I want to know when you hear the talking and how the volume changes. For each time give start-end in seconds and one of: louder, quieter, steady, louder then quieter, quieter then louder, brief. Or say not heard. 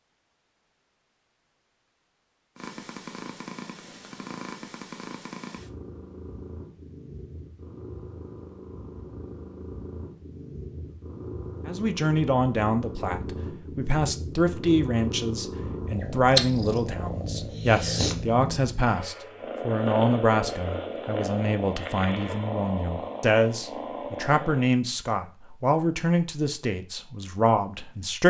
11.7-28.2 steady.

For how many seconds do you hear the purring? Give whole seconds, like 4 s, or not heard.
22 s.